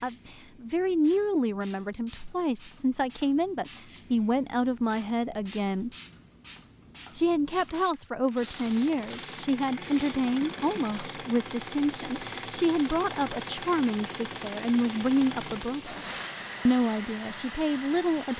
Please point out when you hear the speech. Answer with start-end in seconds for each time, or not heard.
0.0-5.9, 7.2-16.1, 16.6-18.3.